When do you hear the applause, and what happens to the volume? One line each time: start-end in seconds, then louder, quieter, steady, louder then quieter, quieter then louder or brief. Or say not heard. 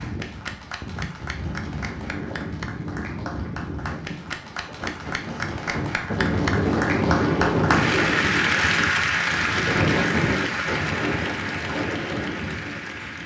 0.0-13.2 louder then quieter.